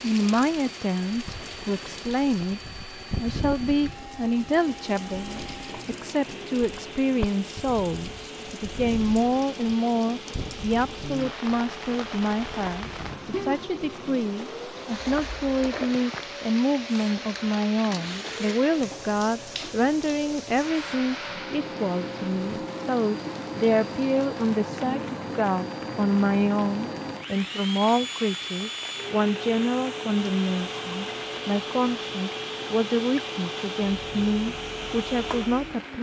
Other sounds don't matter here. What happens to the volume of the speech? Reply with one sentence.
The volume of the speech stays about the same.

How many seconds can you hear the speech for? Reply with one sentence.
The speech can be heard for 36 seconds in total.